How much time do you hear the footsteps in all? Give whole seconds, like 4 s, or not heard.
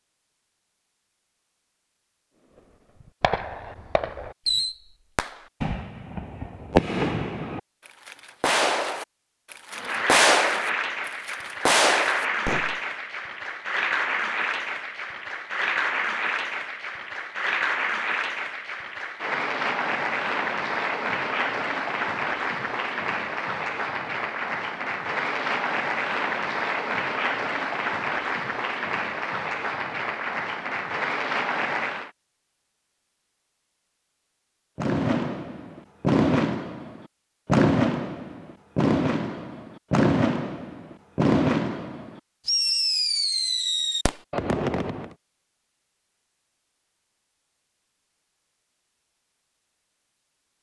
not heard.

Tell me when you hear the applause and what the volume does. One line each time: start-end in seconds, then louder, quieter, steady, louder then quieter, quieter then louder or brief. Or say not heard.
9.7-32.1 steady.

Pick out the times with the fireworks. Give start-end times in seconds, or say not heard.
3.2-12.8, 34.8-45.1.